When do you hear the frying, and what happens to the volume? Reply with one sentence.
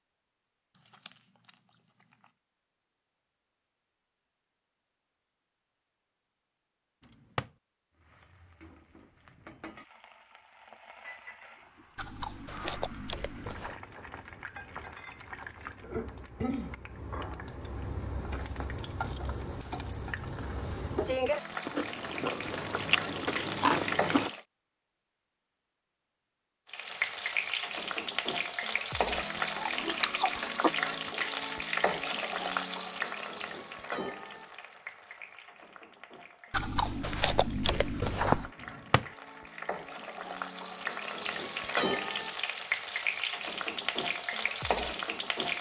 The frying can be heard from 8.0 to 24.4 s, getting louder; and from 26.6 to 45.5 s, getting quieter then louder.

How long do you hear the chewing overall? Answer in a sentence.
The chewing can be heard for 9 seconds in total.